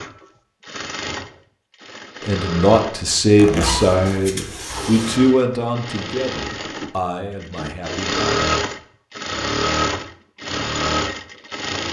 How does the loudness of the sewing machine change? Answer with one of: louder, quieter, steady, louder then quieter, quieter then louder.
louder.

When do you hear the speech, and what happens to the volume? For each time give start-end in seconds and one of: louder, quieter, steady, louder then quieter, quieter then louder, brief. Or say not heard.
2.2-8.4 quieter.